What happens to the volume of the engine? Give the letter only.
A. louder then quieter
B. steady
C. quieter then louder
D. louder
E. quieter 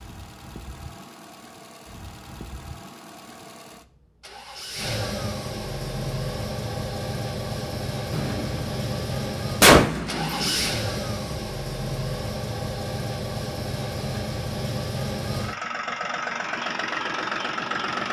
D.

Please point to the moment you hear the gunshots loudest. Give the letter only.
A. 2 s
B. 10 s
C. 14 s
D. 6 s
B.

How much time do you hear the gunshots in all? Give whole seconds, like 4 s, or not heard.
3 s.